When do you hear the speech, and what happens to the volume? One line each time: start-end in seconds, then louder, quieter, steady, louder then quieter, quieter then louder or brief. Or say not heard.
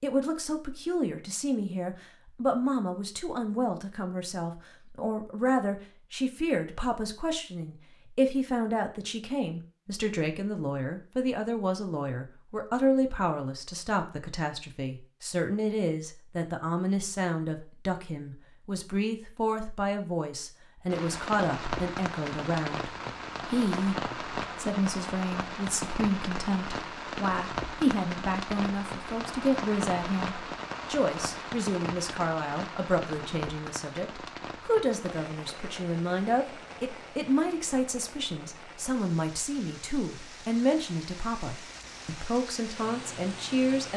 0.0-43.9 steady.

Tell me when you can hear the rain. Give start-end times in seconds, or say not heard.
20.9-43.9.